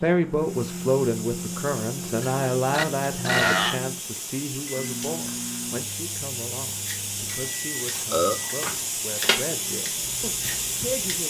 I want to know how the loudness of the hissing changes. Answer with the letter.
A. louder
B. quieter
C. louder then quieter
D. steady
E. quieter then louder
A.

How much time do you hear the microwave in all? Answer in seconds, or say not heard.
11 s.